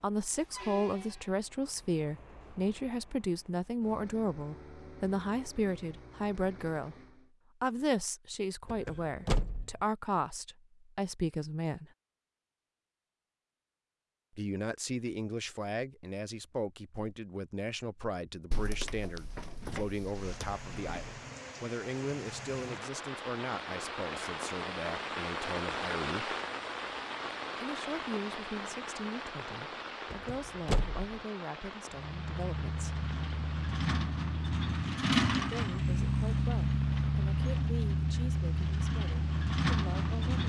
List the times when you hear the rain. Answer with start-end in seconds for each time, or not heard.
20.0-40.4.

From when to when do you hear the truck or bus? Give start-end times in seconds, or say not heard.
0.1-7.3, 31.9-40.4.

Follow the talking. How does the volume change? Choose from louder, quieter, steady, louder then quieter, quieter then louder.
quieter.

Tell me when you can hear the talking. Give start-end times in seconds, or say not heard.
0.0-7.0, 7.6-11.9, 14.3-26.4, 27.6-33.0, 35.4-40.4.